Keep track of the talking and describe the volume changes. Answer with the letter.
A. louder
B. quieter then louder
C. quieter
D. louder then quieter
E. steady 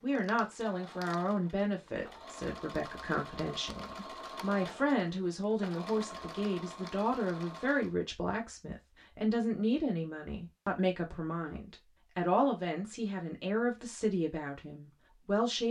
E.